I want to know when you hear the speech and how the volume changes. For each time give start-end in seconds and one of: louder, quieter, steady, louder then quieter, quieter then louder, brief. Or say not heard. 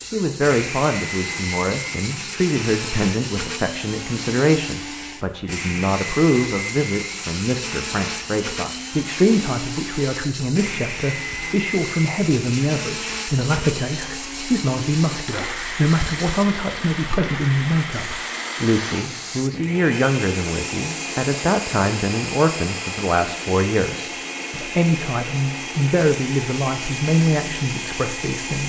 0.0-28.6 steady.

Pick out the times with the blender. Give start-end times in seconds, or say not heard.
0.0-28.6.